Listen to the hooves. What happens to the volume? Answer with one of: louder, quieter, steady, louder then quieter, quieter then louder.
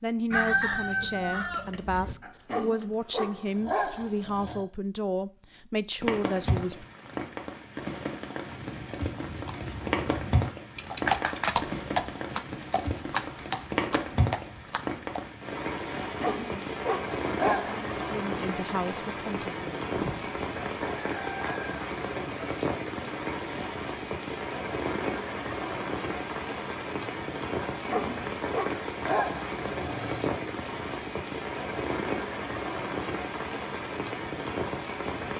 louder then quieter.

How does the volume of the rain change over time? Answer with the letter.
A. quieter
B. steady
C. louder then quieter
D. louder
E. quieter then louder
B.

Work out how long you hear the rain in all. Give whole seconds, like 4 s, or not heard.
29 s.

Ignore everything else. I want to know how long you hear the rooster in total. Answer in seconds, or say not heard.
4 s.